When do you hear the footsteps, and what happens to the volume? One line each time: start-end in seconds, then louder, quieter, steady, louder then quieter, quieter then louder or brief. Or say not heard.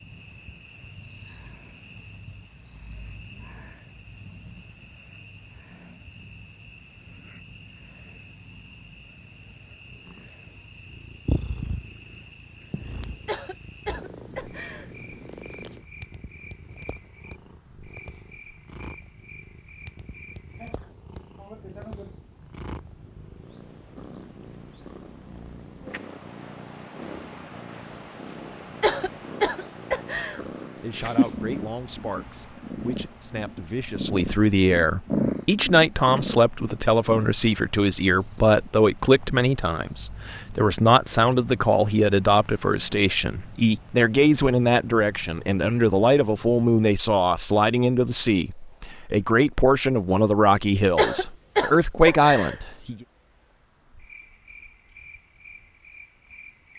not heard.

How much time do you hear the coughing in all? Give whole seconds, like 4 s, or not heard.
5 s.